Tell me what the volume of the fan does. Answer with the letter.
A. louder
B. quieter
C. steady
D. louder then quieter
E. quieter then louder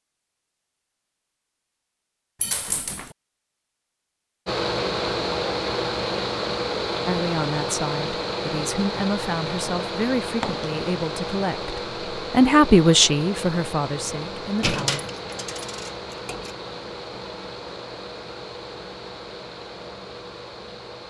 B.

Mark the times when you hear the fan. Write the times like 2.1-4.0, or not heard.
4.5-21.0.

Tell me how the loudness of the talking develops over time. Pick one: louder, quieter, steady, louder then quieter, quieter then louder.
louder then quieter.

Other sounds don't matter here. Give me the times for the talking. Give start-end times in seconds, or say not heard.
7.0-15.1.